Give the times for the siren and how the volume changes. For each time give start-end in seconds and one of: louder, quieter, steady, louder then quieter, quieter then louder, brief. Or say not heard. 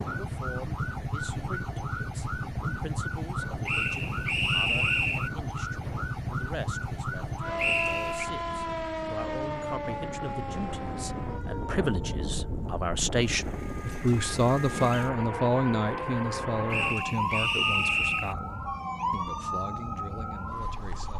0.0-21.1 steady.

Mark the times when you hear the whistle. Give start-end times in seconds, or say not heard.
3.6-5.3, 7.5-8.2, 16.7-18.4.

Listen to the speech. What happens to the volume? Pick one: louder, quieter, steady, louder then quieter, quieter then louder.
louder then quieter.